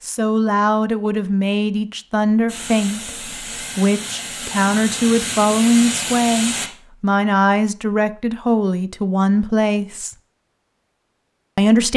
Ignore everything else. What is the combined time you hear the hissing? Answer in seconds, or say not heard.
4 s.